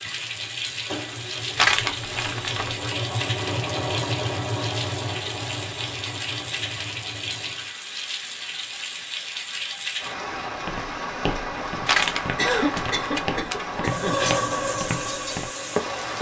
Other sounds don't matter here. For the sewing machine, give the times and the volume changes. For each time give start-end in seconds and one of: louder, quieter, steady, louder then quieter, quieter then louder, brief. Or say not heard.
0.0-7.8 louder then quieter
13.8-16.1 brief.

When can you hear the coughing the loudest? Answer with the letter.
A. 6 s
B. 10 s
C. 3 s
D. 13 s
D.